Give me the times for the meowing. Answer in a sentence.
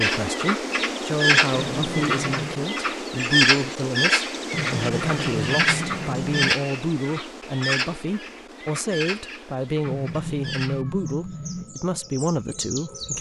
You can hear the meowing from 1.6 to 2.6 s, from 4.5 to 6.5 s and from 9.8 to 11.7 s.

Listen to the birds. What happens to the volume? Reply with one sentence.
The loudness of the birds goes down.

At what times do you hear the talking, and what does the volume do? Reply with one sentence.
The talking can be heard from 0.0 to 13.1 s, at a steady volume.